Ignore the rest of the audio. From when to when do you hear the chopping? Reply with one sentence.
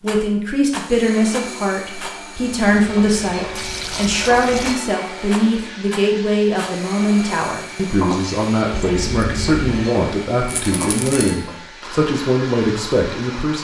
The chopping can't be heard in this clip.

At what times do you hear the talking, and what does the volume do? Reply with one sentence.
You can hear the talking from 0.0 to 13.5 s, at a steady volume.